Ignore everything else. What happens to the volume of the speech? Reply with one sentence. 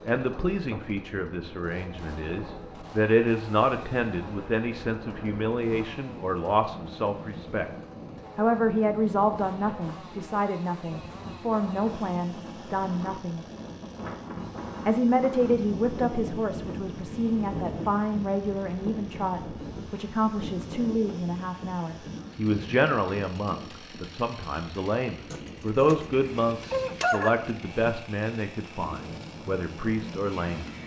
The loudness of the speech stays about the same.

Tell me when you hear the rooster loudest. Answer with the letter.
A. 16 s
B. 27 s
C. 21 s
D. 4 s
B.